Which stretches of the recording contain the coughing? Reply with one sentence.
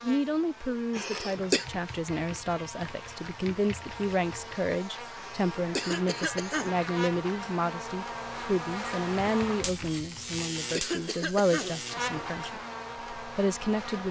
You can hear the coughing from 0.9 to 1.6 s, from 5.2 to 6.8 s and from 10.2 to 11.9 s.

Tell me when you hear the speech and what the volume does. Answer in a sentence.
You can hear the speech from 0.0 to 14.0 s, at a steady volume.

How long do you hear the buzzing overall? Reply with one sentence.
You can hear the buzzing for 14 seconds altogether.